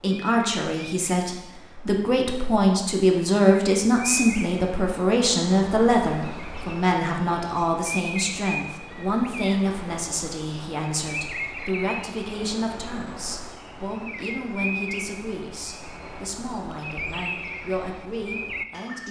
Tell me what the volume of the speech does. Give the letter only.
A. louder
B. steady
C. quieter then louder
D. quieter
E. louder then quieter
D.